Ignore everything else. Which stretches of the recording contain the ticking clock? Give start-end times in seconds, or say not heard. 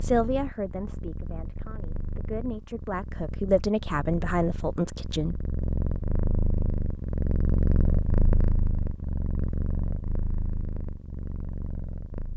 not heard.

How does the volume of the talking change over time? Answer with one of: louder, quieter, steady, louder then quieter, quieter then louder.
quieter then louder.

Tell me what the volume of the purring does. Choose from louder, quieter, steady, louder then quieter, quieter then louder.
louder then quieter.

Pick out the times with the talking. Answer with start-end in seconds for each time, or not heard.
0.0-5.5.